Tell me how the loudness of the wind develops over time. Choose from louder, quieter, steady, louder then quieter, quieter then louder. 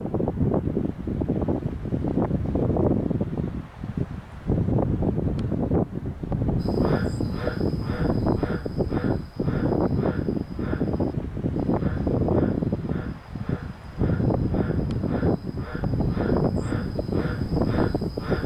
steady.